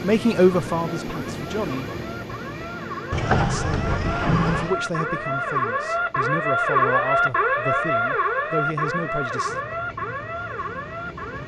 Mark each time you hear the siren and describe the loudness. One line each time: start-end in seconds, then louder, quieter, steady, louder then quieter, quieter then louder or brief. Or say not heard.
0.0-11.4 louder then quieter.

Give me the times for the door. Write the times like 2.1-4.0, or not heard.
3.1-4.8.